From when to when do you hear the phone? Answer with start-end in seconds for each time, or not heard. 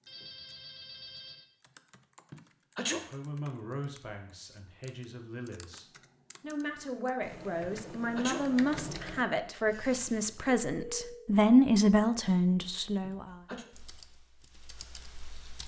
0.1-1.4, 10.7-11.2.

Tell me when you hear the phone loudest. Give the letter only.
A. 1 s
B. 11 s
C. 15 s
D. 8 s
B.